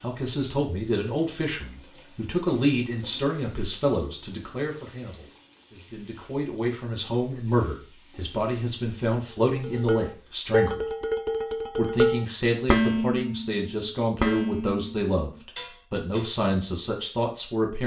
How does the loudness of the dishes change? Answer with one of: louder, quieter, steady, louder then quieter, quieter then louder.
quieter.